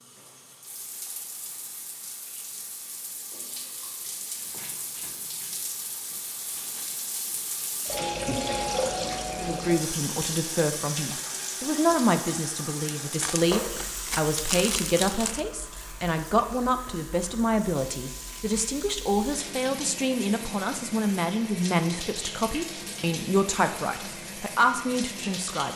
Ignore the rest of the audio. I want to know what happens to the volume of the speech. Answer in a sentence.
The volume of the speech stays about the same.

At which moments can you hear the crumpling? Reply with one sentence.
You can hear the crumpling from 13.0 to 15.4 s.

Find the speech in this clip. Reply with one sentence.
You can hear the speech from 9.4 to 25.7 s.